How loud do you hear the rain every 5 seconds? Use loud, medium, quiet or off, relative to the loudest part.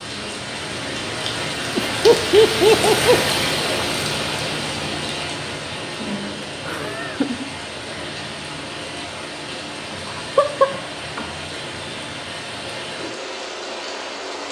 loud, medium, medium.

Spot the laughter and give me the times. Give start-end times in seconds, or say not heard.
1.8-3.3, 6.7-7.5, 10.2-11.2.